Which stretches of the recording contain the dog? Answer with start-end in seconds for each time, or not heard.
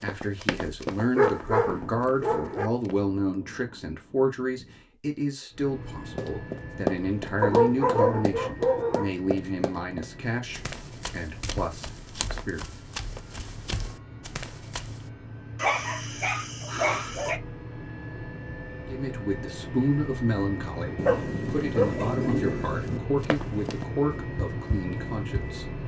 1.1-2.7, 7.4-9.2, 15.6-17.4, 21.1-22.4.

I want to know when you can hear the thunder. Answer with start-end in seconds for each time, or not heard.
1.4-4.8, 20.9-23.0.